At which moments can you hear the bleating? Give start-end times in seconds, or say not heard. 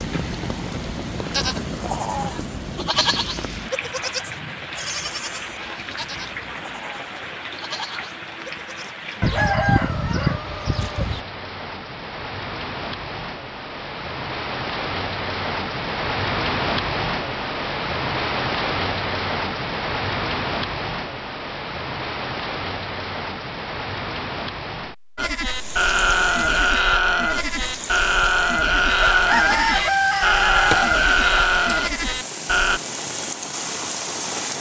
1.3-8.9, 25.1-32.8.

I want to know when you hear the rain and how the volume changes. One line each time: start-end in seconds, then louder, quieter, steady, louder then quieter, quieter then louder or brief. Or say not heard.
0.0-34.5 louder then quieter.